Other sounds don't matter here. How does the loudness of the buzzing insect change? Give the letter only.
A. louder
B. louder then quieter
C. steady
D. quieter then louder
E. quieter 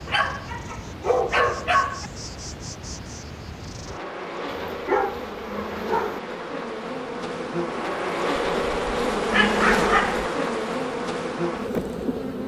A.